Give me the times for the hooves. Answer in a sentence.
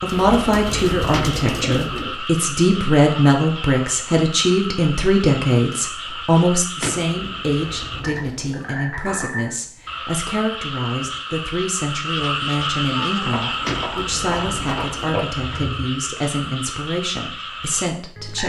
The hooves can be heard from 13.1 to 15.9 s.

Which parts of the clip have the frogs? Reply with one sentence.
The frogs can be heard from 0.0 to 18.4 s.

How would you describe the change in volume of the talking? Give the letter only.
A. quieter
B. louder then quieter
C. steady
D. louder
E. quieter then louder
A.